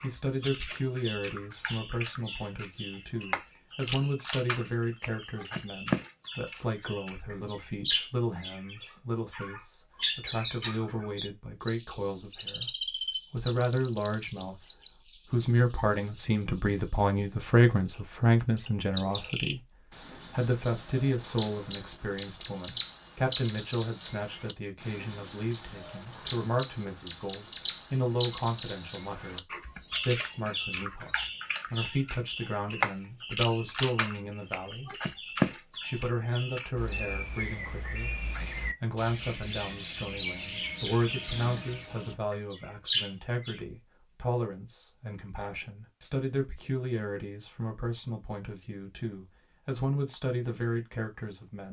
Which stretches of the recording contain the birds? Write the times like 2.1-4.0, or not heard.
0.0-43.6.